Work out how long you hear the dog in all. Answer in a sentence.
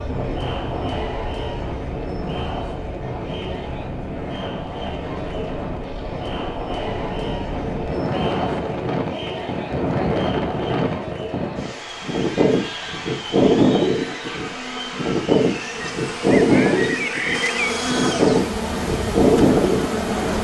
The dog can't be heard in this clip.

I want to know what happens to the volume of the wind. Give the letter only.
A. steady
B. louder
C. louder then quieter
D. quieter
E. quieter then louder
B.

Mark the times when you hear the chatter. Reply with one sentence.
You can hear the chatter from 0.0 to 20.3 s.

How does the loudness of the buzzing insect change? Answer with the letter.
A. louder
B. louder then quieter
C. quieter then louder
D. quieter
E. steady
A.